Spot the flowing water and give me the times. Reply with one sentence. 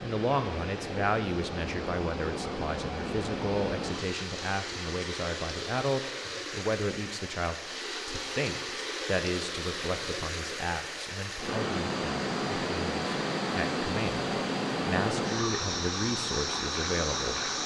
You can hear the flowing water from 0.0 to 17.6 s.